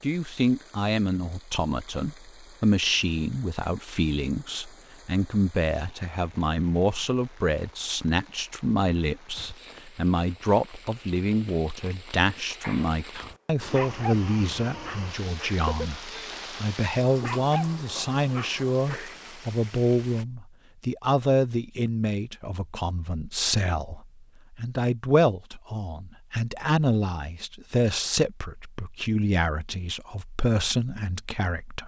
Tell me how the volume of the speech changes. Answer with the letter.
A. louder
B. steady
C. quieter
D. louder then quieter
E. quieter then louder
B.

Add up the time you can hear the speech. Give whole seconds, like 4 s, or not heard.
32 s.